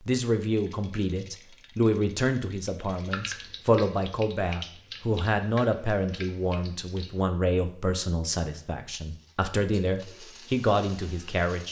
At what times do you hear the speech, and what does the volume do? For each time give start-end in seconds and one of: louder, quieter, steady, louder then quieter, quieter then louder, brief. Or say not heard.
0.1-11.6 steady.